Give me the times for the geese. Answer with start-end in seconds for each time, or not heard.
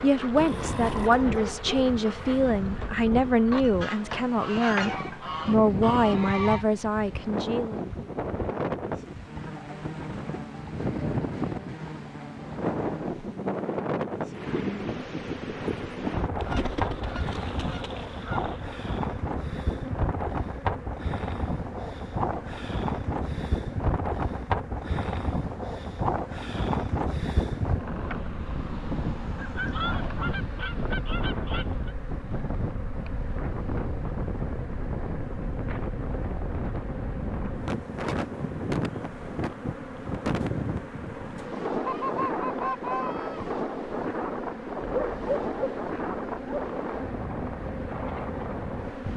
3.6-6.7, 16.4-18.7, 29.4-31.9, 41.9-43.5.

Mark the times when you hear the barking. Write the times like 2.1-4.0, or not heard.
0.3-2.5, 44.8-46.8.